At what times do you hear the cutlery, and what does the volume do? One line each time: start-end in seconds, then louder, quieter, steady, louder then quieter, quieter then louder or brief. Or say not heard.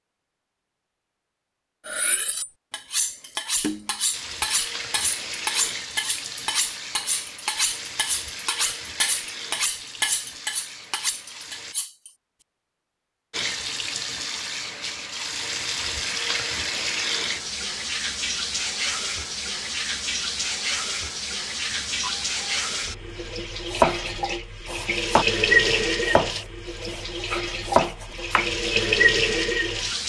1.9-12.1 steady.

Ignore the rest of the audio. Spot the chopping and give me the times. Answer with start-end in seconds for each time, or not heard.
23.7-28.5.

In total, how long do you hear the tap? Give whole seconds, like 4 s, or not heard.
24 s.